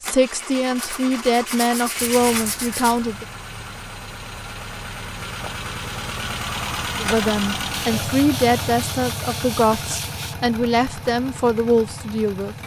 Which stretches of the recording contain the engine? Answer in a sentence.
The engine can be heard from 0.0 to 12.6 s.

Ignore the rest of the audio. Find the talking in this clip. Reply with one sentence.
You can hear the talking from 0.0 to 3.2 s and from 7.0 to 12.6 s.